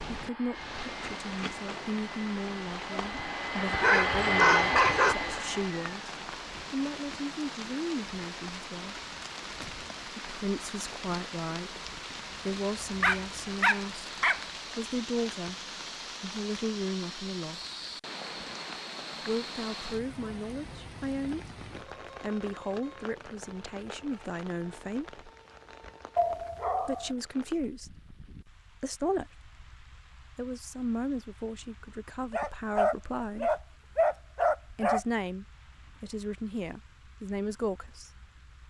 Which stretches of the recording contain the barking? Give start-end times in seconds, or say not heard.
3.7-5.2, 13.0-14.4, 26.1-27.1, 32.3-35.0.